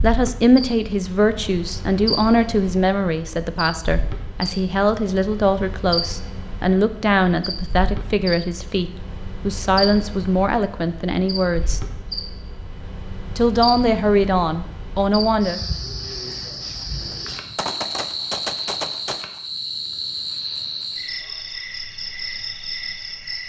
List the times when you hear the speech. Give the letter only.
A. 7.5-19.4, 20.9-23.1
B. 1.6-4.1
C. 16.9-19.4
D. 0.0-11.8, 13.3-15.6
D.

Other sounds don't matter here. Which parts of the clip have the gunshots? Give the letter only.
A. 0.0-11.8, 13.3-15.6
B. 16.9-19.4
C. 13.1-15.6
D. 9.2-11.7
B.